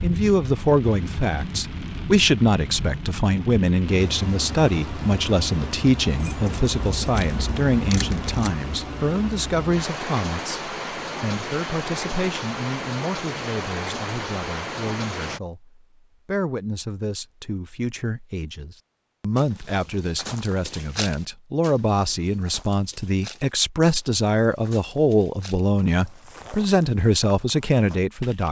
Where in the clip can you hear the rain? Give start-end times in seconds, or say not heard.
0.0-15.4.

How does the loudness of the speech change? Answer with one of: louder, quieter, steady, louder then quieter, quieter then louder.
quieter then louder.